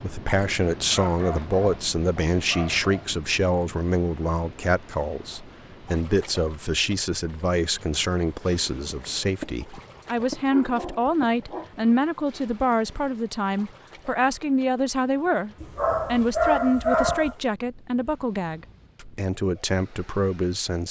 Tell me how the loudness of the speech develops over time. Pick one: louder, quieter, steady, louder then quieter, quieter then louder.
steady.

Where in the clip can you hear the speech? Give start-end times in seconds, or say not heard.
0.0-20.8.